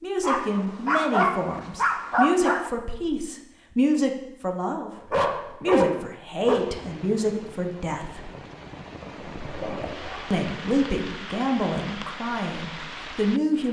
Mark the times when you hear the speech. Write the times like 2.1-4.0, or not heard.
0.0-8.3, 10.3-13.6.